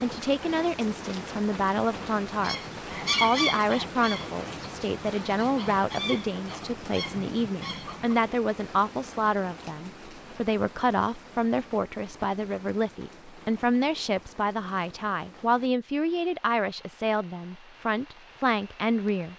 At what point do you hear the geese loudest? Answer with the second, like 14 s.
3 s.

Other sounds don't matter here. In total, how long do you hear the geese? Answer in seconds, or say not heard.
6 s.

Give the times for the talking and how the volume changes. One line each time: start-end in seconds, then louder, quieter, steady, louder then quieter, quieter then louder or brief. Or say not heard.
0.0-2.5 brief
3.2-19.3 steady.